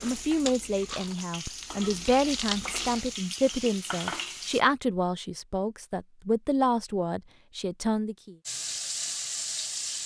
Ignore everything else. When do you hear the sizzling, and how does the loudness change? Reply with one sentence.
You can hear the sizzling from 0.0 to 4.6 s, getting louder; and briefly from 8.4 to 10.0 s.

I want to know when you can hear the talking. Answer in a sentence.
You can hear the talking from 0.0 to 8.3 s.